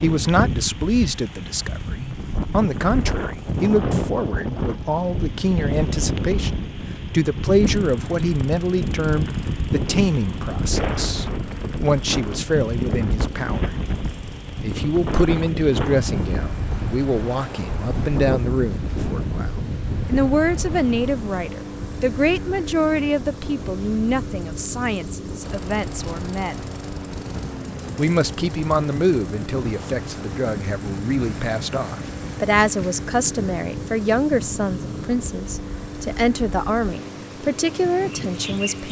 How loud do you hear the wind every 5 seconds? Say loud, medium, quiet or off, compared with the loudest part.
loud, loud, loud, loud, medium, medium, medium, medium.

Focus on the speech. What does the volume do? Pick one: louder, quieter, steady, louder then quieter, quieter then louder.
steady.